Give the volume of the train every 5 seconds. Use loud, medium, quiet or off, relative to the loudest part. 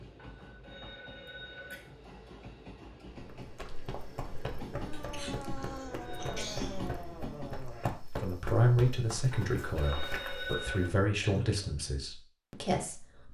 medium, loud, off.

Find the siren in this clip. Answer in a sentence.
You can hear the siren from 4.8 to 7.8 s.